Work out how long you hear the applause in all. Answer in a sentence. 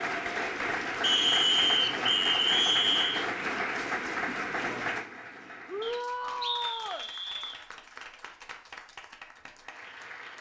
The applause can be heard for 10 seconds in total.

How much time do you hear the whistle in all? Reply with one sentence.
The whistle can be heard for 4 seconds in total.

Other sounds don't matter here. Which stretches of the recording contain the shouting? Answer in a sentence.
The shouting can be heard from 5.7 to 7.0 s.